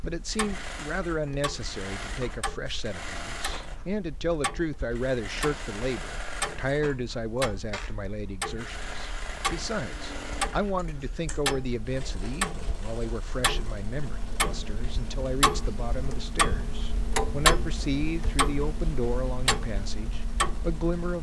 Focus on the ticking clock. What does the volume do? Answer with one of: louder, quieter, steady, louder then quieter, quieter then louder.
louder.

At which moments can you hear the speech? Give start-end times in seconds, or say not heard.
0.0-21.1.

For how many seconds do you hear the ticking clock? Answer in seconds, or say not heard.
21 s.